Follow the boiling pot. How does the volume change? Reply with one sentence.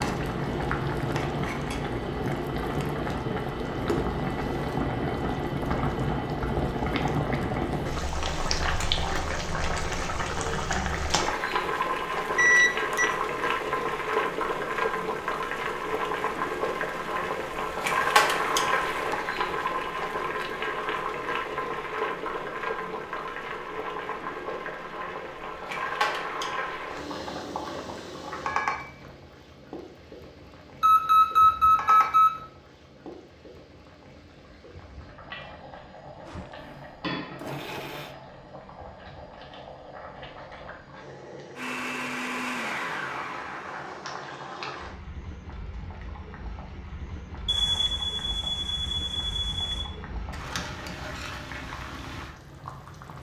The loudness of the boiling pot goes down.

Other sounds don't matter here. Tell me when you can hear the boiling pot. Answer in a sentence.
You can hear the boiling pot from 0.0 to 53.1 s.